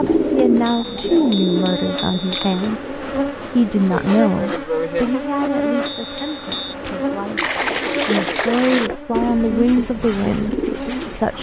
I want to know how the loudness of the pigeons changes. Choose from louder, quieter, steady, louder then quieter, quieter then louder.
quieter then louder.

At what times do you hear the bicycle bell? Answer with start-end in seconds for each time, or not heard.
0.7-2.5, 6.0-6.8.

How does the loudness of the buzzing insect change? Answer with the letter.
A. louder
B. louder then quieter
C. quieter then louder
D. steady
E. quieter
B.